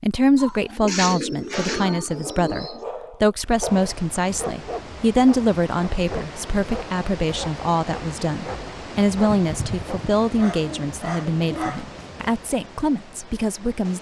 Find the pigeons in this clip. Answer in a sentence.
You can hear the pigeons from 0.3 to 2.9 s and from 9.2 to 11.8 s.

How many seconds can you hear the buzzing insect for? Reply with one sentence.
You can't hear the buzzing insect here.